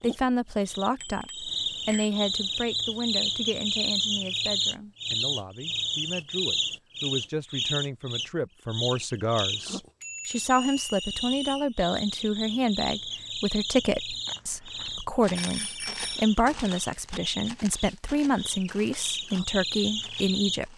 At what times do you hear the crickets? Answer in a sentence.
The crickets can be heard from 0.0 to 20.6 s.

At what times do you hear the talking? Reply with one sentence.
The talking can be heard from 0.0 to 20.7 s.